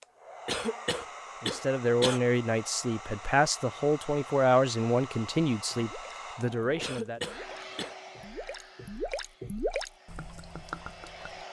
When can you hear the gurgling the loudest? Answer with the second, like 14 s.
10 s.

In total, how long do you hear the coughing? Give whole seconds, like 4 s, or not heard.
3 s.